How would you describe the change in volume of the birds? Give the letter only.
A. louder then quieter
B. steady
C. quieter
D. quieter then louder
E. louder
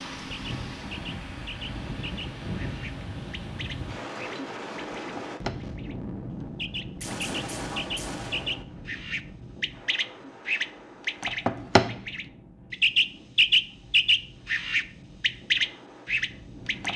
E.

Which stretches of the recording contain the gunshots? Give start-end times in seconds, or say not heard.
7.0-8.7.